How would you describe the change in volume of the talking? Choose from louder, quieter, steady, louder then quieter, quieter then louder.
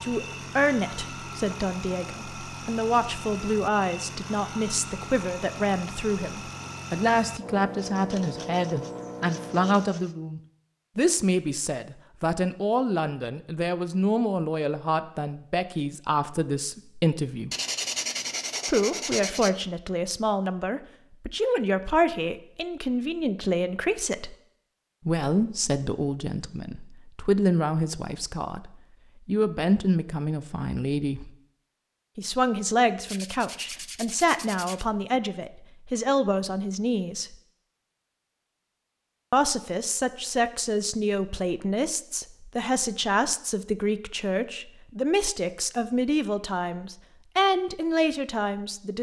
steady.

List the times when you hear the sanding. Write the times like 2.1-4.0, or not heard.
7.8-10.2, 17.5-19.5, 33.0-34.9.